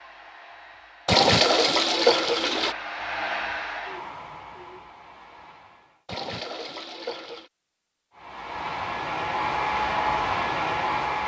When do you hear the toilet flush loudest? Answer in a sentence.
The loudest moment of the toilet flush is at 2 seconds.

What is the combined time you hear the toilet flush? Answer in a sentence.
The toilet flush can be heard for 3 seconds in total.